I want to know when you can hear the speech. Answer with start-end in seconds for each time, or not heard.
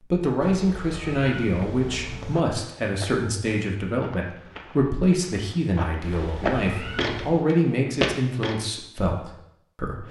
0.0-10.0.